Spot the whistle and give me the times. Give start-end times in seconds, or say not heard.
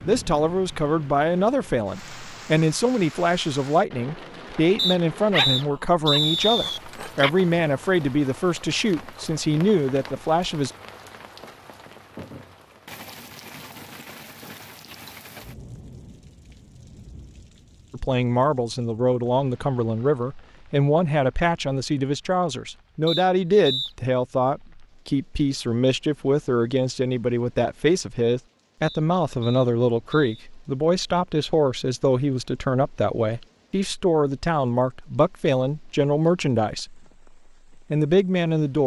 4.8-6.8, 23.1-23.9, 28.8-30.4.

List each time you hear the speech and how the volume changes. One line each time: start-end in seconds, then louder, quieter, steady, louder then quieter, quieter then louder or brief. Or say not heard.
0.1-10.7 steady
17.9-37.0 steady
37.8-38.8 brief.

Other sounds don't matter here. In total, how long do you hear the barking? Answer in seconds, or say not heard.
2 s.